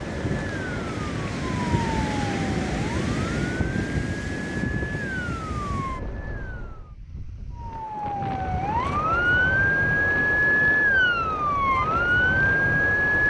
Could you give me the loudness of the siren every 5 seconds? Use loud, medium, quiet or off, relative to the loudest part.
quiet, medium, loud.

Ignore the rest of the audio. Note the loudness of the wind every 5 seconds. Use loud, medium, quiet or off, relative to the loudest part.
loud, medium, medium.